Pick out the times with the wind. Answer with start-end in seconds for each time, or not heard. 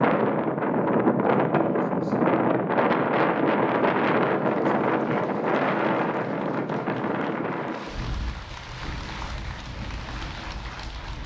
0.0-11.2.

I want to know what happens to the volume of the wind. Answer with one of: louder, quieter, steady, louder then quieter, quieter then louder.
quieter.